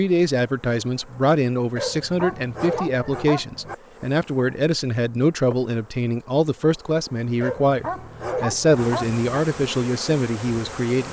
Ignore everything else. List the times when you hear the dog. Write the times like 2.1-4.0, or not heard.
1.8-3.8, 7.4-9.2.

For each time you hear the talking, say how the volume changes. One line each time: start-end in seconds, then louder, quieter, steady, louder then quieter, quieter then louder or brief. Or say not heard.
0.0-11.0 steady.